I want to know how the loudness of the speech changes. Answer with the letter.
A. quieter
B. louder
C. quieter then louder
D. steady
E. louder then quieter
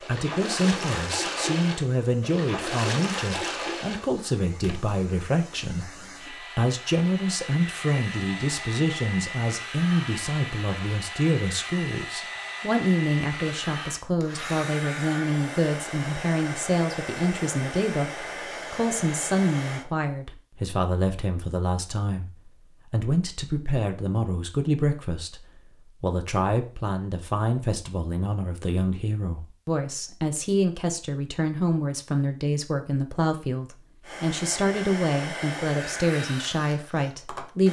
D.